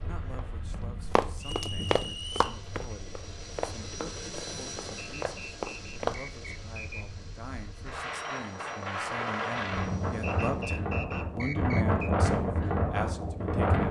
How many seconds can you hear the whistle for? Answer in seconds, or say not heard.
5 s.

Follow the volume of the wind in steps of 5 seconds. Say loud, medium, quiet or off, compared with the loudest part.
quiet, medium, loud.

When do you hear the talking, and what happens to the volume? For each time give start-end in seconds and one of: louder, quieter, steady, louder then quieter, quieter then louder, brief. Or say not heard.
0.0-13.8 louder.